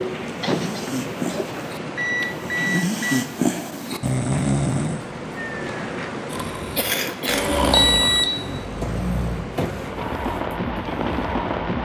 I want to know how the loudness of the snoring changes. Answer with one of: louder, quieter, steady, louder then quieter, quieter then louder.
louder then quieter.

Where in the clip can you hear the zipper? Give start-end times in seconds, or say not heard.
not heard.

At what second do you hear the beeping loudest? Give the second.
8 s.